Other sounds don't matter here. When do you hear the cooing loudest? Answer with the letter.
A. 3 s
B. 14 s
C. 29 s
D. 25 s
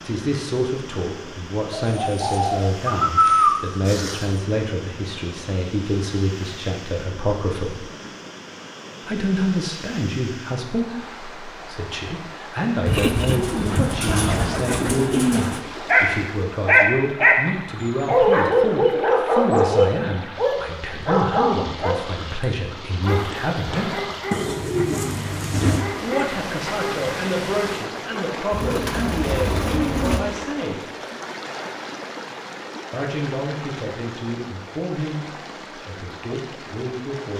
A.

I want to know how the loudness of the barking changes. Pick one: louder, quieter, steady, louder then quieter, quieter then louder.
quieter.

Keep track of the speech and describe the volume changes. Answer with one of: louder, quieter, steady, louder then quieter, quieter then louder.
steady.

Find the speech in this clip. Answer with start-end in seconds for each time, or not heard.
0.0-7.8, 9.1-24.1, 26.0-30.9, 32.9-37.3.